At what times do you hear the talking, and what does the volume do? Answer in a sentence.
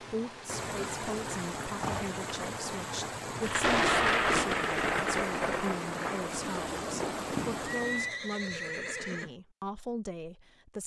The talking can be heard from 0.0 to 10.8 s, at a steady volume.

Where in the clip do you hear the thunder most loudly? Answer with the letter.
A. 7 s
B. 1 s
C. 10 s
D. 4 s
D.